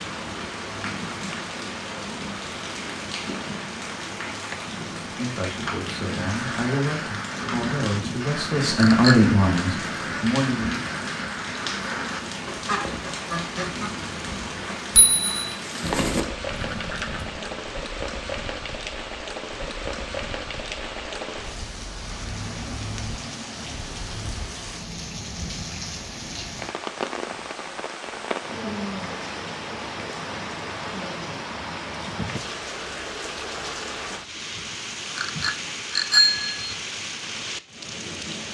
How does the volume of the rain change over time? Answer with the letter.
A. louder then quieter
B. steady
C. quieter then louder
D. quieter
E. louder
B.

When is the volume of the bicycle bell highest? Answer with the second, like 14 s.
36 s.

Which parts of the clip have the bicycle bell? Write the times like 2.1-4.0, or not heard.
8.8-9.2, 14.9-15.5, 35.1-36.7.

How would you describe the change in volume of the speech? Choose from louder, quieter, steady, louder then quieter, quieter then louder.
louder then quieter.